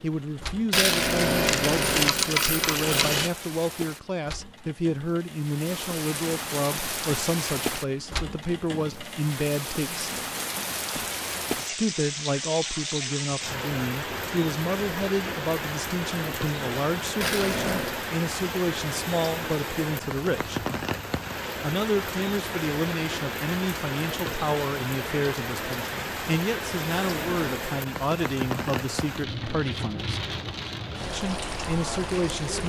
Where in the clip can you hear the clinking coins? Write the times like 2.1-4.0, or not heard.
0.7-3.3, 17.2-17.9, 27.1-27.6.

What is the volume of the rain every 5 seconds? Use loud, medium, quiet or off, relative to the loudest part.
medium, loud, loud, loud, loud, loud, loud.